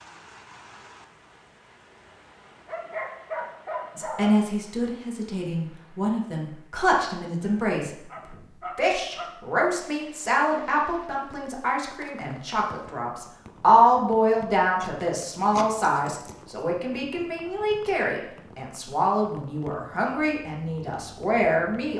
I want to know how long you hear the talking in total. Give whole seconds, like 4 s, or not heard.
18 s.